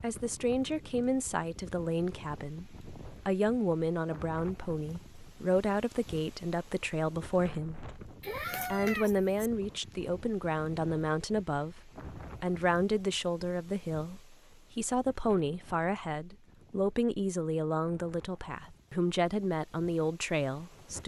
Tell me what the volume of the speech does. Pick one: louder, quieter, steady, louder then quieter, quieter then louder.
steady.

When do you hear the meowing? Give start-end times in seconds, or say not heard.
8.2-9.5.